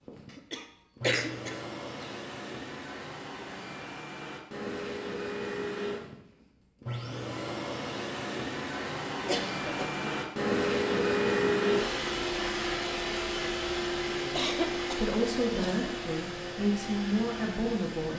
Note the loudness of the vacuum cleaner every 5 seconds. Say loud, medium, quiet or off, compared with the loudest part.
medium, medium, loud, medium.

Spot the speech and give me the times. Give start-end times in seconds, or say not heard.
14.1-18.1.